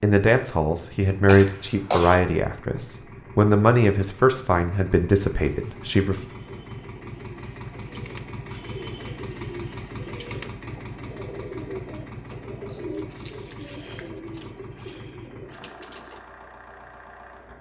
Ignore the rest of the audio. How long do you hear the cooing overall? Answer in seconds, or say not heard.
11 s.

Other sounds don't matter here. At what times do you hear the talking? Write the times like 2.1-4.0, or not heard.
0.0-6.2.